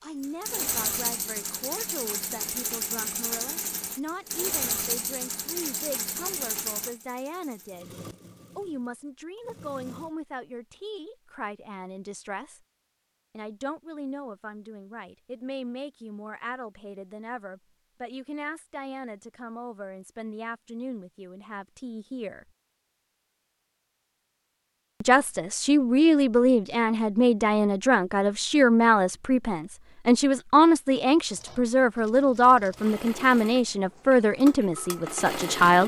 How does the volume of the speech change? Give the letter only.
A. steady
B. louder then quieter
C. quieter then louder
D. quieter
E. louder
E.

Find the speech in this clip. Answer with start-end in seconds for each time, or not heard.
0.0-7.9, 8.6-12.6, 13.3-22.4, 25.0-35.8.